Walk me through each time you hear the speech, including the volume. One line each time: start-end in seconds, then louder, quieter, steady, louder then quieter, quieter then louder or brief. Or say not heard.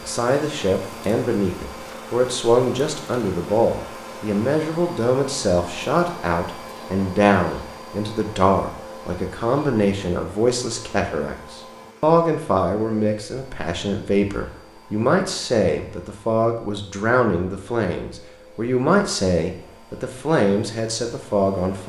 0.0-21.8 steady.